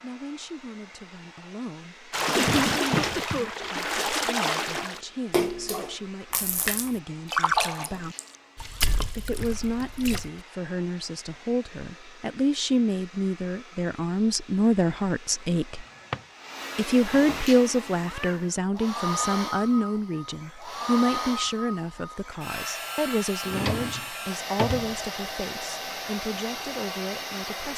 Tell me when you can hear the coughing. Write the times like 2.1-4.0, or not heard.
2.4-3.5.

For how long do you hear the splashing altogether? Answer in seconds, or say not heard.
8 s.